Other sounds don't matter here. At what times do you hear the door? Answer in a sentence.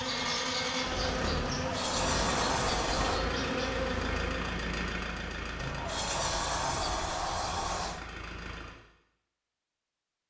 The door can be heard from 1.4 to 3.2 s and from 5.5 to 8.0 s.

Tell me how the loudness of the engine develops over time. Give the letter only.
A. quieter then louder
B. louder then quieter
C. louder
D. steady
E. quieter
E.